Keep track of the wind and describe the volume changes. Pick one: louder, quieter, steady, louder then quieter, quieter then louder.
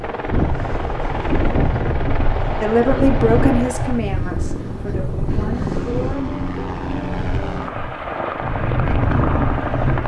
quieter then louder.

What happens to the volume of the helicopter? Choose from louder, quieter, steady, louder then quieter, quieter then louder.
steady.